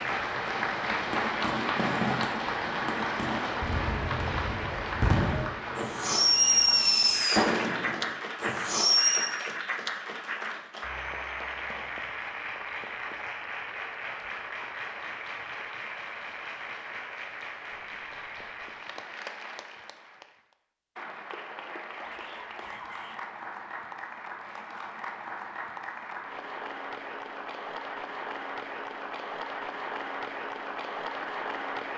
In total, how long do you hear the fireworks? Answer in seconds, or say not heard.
9 s.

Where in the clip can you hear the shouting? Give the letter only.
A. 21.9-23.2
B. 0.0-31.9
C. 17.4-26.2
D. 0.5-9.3
A.